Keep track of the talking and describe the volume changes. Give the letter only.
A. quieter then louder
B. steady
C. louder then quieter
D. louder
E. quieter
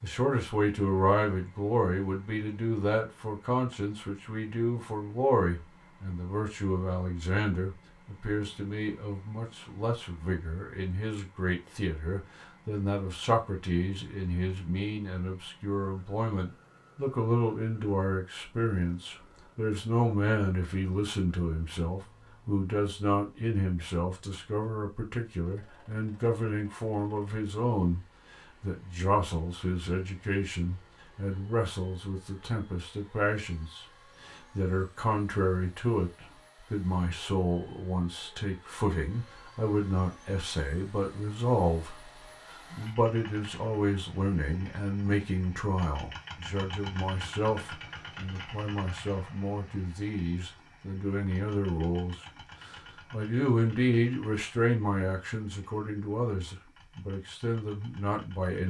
B.